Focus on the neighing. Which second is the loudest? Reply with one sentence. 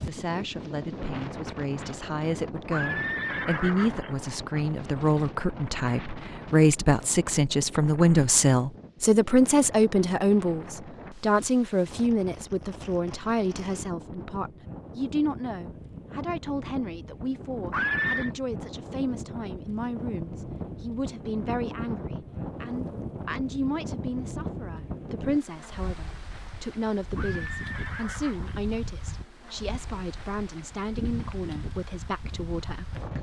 The volume of the neighing peaks at 18 seconds.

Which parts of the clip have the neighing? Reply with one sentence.
You can hear the neighing from 2.7 to 4.1 s, from 17.7 to 18.3 s and from 27.1 to 28.6 s.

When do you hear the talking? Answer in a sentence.
The talking can be heard from 0.1 to 33.1 s.